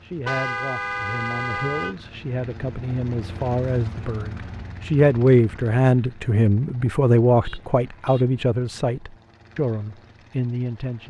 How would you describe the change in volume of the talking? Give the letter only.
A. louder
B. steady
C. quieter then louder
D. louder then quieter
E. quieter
D.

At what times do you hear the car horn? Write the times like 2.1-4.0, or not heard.
0.2-1.9, 7.4-8.2.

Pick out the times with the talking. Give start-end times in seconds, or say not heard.
0.0-11.0.